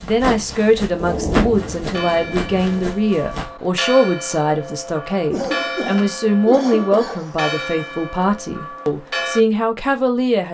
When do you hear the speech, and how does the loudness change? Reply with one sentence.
You can hear the speech from 0.0 to 10.4 s, at a steady volume.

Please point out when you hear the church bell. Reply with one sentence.
You can hear the church bell from 1.8 to 9.4 s.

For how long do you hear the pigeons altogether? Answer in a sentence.
You can't hear the pigeons here.